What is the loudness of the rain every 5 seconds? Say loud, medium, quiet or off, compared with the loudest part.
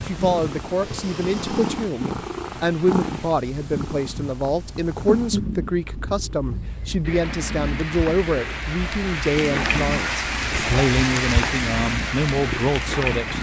quiet, medium, loud.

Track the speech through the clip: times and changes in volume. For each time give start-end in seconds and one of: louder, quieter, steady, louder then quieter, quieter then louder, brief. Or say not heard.
0.0-13.3 steady.